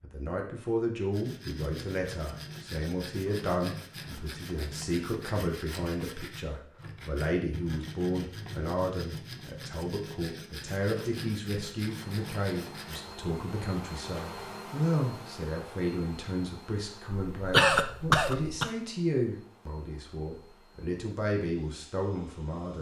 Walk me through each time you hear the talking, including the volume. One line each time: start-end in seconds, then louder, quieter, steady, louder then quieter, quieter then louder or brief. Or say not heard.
0.0-22.7 steady.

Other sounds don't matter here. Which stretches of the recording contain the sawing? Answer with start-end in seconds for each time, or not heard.
1.1-13.1.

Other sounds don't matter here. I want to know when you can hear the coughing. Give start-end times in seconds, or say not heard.
17.3-18.7.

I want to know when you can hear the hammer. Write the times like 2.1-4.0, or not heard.
not heard.